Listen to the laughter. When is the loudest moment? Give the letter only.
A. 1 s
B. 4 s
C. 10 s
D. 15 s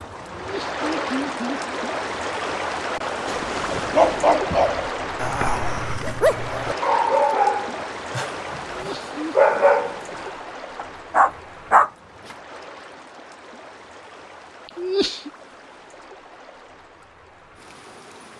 D.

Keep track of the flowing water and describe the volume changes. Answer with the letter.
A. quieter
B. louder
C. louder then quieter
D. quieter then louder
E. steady
A.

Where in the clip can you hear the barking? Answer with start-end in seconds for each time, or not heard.
3.2-12.3.